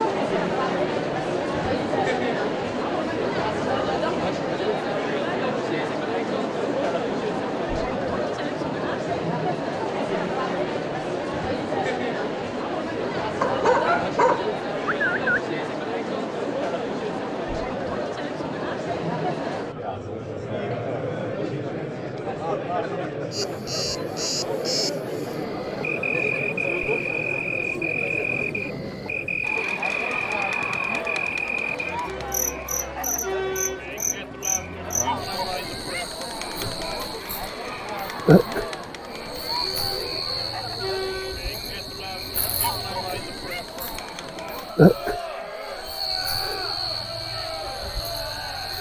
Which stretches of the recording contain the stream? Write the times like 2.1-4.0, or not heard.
not heard.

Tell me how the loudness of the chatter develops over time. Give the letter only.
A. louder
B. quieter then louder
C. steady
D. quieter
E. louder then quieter
D.